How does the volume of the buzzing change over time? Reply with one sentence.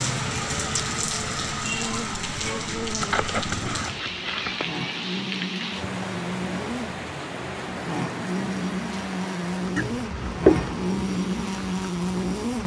The volume of the buzzing goes up.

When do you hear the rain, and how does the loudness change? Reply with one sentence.
The rain can be heard from 0.0 to 12.6 s, getting quieter.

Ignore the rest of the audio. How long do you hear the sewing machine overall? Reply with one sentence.
You can't hear the sewing machine here.